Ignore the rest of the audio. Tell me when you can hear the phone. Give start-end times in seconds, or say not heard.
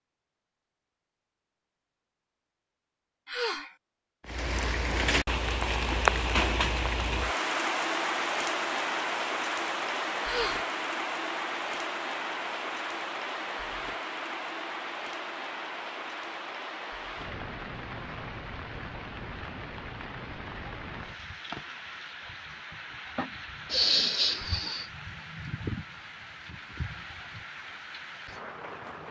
not heard.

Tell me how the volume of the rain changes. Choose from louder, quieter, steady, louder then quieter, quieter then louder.
quieter.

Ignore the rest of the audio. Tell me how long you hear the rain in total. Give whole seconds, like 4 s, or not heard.
25 s.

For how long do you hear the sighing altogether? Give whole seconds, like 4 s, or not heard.
2 s.